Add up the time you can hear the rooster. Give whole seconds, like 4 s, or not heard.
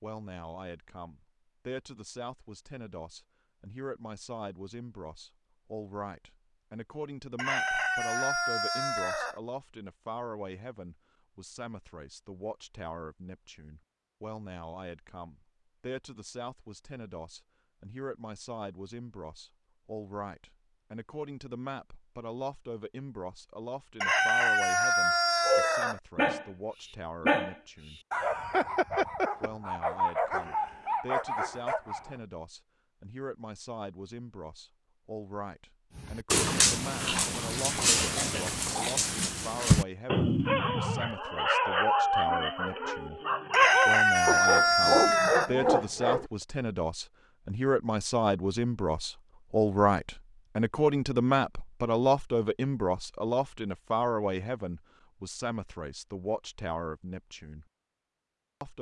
6 s.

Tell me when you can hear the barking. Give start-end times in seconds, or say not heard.
25.4-32.1, 36.0-46.2.